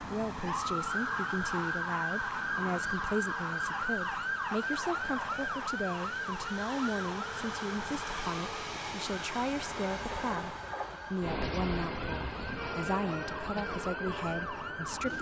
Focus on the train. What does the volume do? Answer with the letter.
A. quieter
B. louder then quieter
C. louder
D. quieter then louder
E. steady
C.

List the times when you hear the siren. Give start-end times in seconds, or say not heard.
0.0-15.1.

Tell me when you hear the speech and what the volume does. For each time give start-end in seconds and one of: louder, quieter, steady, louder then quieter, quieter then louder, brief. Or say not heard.
0.0-15.1 steady.